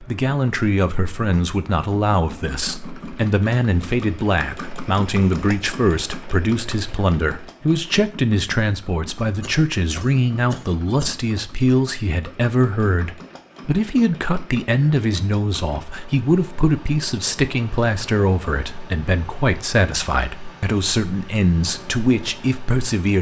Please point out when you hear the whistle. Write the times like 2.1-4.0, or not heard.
not heard.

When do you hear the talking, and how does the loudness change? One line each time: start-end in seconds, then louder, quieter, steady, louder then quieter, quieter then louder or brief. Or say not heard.
0.0-23.1 steady.